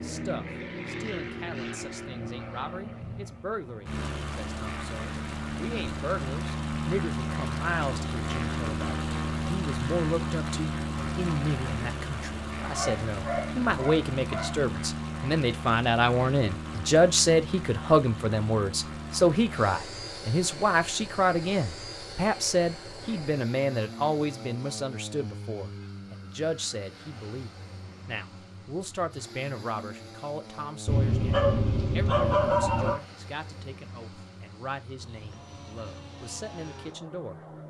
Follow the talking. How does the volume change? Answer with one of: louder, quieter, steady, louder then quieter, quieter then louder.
louder then quieter.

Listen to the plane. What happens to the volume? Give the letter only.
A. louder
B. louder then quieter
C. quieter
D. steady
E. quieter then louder
C.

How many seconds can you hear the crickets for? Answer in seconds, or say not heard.
not heard.